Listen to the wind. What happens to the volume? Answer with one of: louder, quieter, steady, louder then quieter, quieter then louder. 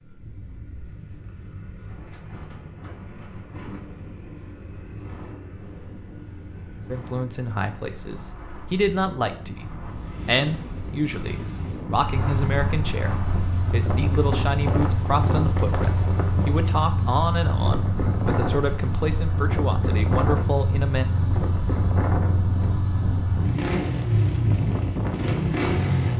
louder.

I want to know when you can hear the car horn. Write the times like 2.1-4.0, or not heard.
not heard.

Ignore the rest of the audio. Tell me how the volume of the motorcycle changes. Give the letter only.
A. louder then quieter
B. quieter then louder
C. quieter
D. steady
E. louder
E.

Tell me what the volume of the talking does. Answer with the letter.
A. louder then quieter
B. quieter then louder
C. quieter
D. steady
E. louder
D.